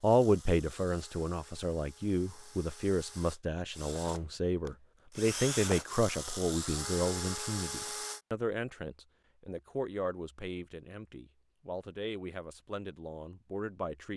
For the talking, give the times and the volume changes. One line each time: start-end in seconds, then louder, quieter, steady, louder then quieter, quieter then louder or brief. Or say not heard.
0.0-14.1 quieter.